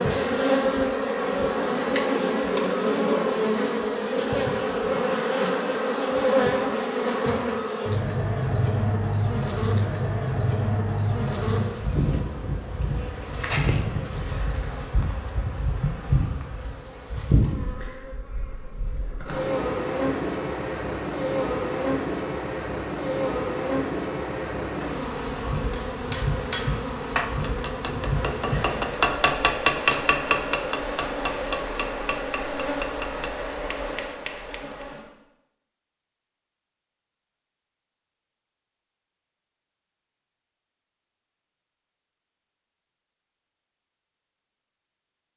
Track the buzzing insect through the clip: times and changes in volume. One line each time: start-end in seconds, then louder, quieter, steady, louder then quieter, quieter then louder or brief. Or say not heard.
0.0-35.0 quieter.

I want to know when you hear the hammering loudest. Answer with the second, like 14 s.
30 s.